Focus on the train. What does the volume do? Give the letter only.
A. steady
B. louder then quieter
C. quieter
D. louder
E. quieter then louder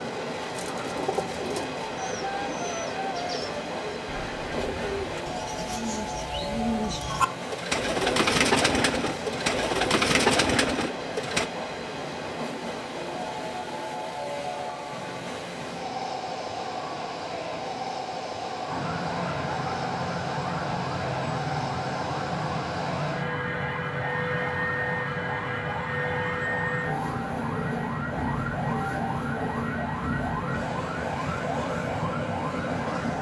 A.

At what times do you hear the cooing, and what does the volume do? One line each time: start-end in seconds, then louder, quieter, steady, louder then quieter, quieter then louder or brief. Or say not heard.
0.5-11.5 louder.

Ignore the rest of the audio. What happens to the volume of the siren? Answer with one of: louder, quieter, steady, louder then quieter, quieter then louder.
steady.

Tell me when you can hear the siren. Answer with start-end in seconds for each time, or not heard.
18.6-33.1.